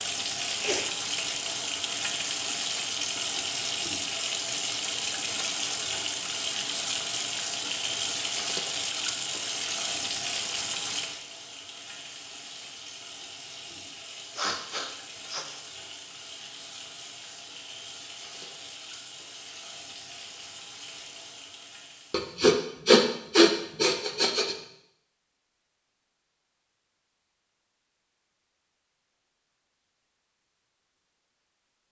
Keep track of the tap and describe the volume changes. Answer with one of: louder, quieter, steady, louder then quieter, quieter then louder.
quieter.